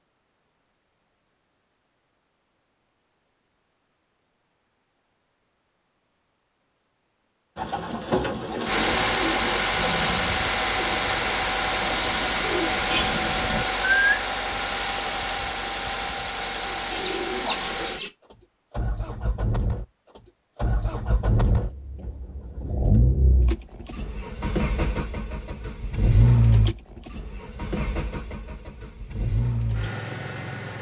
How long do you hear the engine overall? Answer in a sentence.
You can hear the engine for 22 seconds altogether.